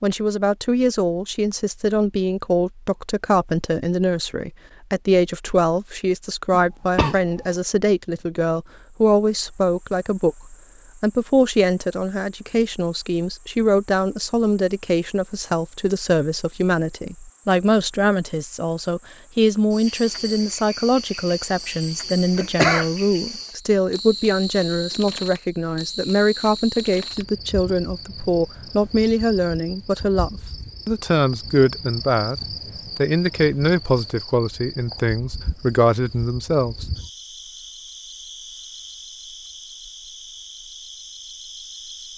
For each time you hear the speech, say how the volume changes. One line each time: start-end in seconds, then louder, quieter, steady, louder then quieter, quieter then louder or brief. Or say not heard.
0.0-36.9 steady.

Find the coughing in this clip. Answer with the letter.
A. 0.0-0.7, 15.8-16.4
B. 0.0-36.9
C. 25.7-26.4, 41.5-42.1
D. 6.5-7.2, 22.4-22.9
D.